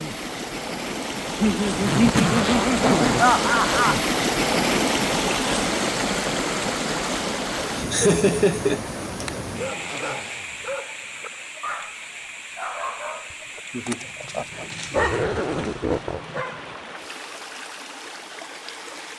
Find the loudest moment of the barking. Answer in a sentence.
The volume of the barking peaks at 15 seconds.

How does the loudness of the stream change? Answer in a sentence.
The loudness of the stream goes down.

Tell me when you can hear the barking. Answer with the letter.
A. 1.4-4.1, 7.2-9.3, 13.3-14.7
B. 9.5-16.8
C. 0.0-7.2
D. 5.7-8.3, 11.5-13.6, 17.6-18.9
B.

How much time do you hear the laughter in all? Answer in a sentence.
You can hear the laughter for 6 seconds altogether.